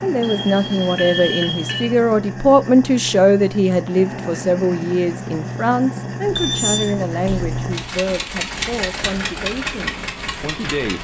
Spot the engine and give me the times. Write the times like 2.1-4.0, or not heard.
0.0-10.9.